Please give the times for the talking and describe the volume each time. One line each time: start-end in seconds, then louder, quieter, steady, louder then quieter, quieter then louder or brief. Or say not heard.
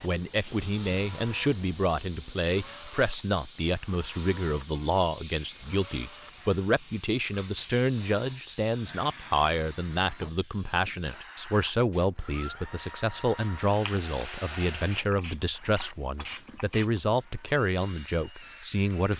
0.0-19.1 steady.